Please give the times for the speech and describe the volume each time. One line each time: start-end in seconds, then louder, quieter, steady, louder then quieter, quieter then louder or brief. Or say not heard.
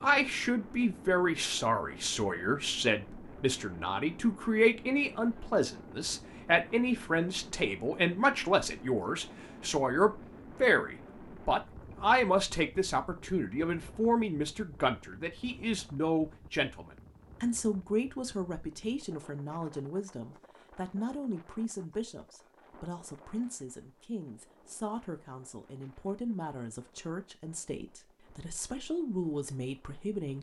0.0-30.3 quieter.